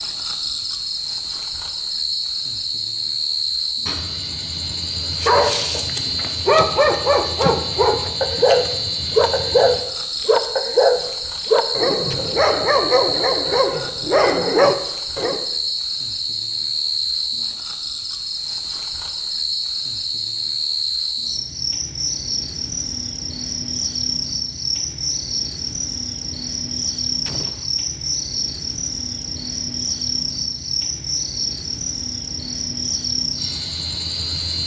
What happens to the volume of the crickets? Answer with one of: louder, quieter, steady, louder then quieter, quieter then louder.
steady.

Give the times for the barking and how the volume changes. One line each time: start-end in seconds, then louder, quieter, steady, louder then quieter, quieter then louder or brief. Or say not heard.
5.2-15.4 steady.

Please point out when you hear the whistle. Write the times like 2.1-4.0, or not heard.
not heard.